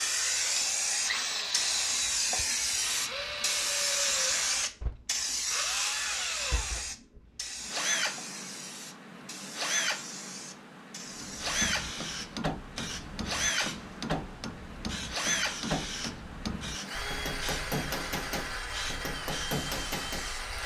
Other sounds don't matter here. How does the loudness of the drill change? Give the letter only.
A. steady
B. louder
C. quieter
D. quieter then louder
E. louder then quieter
A.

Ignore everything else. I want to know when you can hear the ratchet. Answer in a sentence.
The ratchet can't be heard in this clip.